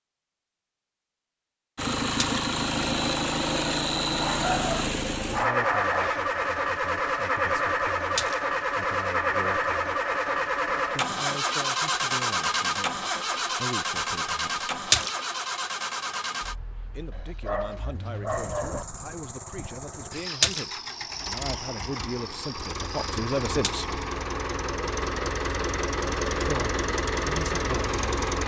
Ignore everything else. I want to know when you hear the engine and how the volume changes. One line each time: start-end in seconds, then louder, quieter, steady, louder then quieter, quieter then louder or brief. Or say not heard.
1.8-28.4 quieter then louder.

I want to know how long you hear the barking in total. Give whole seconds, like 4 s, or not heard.
4 s.